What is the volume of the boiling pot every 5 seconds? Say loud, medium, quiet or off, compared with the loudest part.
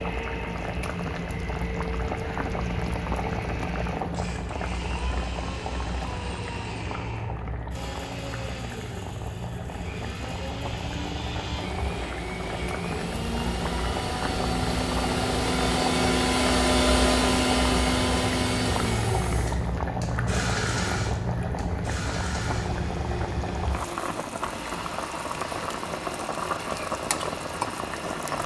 loud, medium, loud, loud, loud, loud.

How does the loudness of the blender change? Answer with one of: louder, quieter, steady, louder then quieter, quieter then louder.
louder then quieter.